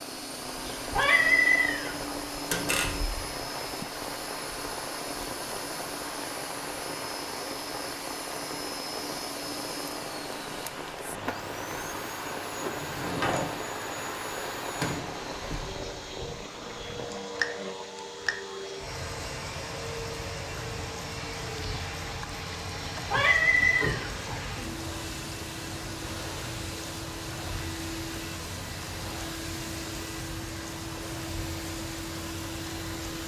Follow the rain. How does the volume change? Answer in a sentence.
The loudness of the rain stays about the same.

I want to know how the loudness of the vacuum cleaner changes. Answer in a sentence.
The volume of the vacuum cleaner stays about the same.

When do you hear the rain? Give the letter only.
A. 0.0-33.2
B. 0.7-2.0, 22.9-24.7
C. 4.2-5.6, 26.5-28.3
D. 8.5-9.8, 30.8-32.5
A.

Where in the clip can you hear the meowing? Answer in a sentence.
The meowing can be heard from 0.7 to 2.0 s and from 22.9 to 24.7 s.